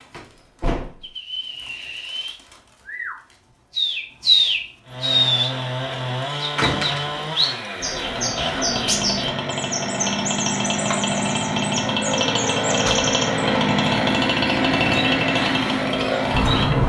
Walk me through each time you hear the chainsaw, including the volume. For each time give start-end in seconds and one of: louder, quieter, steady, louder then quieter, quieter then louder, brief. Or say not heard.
4.8-16.8 louder.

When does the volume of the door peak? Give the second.
7 s.